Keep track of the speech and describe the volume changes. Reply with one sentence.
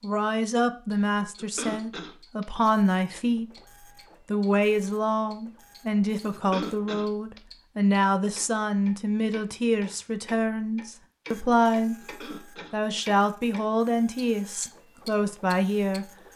The loudness of the speech stays about the same.